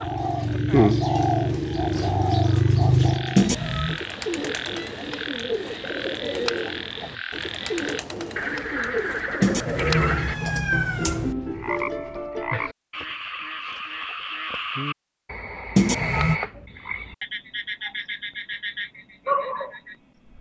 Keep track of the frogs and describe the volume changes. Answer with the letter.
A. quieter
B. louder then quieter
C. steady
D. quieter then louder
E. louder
E.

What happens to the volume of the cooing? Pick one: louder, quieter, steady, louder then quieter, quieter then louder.
quieter.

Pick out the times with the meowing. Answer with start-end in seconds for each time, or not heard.
3.4-4.0, 9.4-11.3, 15.8-16.4.